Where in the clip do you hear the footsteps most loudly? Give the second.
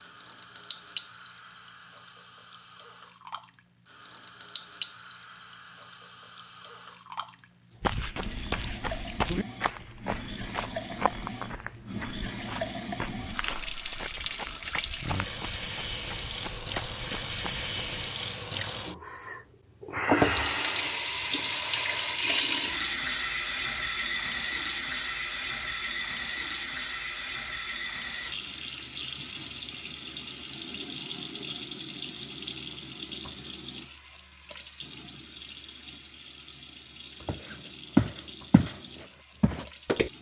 38 s.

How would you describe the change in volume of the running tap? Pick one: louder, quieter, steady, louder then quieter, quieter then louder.
louder then quieter.